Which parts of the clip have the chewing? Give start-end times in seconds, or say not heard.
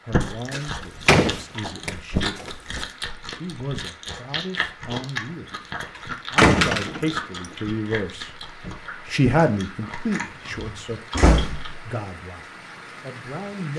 0.1-11.7.